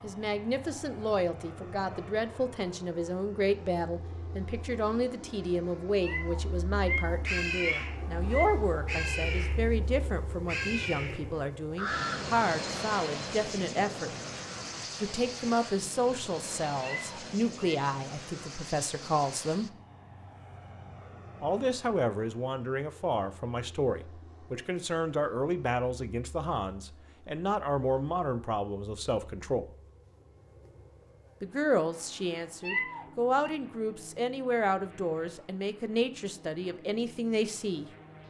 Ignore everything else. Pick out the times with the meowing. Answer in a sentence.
The meowing can be heard from 6.0 to 8.7 s, from 16.8 to 17.8 s and from 32.6 to 33.5 s.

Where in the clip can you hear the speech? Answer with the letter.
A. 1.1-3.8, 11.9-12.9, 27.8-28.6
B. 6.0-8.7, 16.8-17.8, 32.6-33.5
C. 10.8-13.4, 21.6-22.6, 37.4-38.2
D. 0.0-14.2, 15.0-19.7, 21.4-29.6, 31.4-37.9
D.